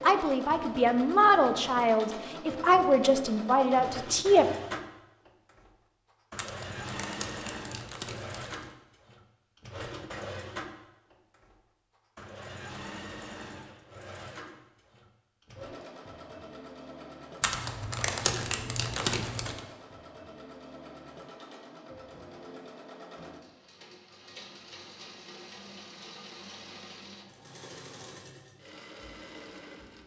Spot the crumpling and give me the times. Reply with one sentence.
You can hear the crumpling from 6.3 to 8.7 s and from 17.4 to 19.6 s.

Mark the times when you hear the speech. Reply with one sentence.
The speech can be heard from 0.0 to 4.5 s.